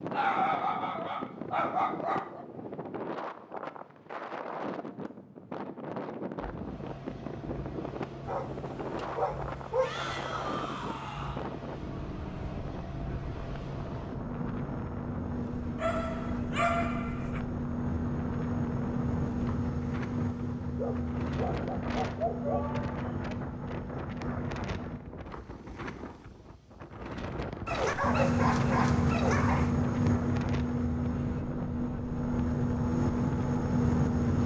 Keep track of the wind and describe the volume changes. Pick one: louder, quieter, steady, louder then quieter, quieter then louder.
steady.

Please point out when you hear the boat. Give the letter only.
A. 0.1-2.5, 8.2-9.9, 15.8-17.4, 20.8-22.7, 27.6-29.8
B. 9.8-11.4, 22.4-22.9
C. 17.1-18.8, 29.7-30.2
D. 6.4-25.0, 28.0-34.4
D.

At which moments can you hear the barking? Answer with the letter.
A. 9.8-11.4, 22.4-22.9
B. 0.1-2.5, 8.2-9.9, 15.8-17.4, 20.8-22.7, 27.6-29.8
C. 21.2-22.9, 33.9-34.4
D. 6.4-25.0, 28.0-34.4
B.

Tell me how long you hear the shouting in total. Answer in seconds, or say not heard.
2 s.